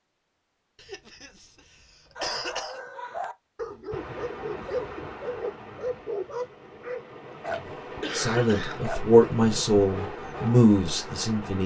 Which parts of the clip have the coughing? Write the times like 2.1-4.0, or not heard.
0.8-2.8, 7.1-9.3.